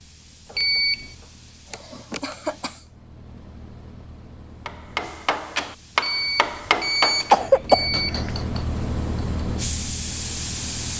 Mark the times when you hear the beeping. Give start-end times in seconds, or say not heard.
0.6-1.1, 6.0-8.2.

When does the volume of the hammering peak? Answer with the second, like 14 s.
7 s.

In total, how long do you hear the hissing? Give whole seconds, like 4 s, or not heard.
11 s.